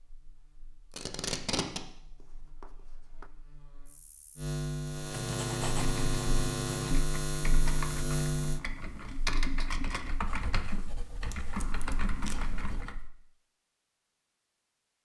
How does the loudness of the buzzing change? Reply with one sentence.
The loudness of the buzzing goes up.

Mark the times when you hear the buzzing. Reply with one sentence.
The buzzing can be heard from 0.0 to 8.6 s.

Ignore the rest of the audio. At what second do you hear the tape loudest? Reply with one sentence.
The volume of the tape peaks at 1 second.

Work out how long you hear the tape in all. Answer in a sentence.
You can hear the tape for 2 seconds altogether.